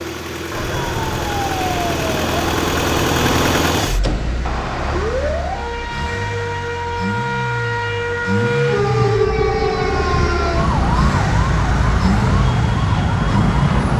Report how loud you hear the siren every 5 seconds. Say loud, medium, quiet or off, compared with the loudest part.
medium, loud, loud.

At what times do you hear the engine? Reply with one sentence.
You can hear the engine from 0.0 to 13.9 s.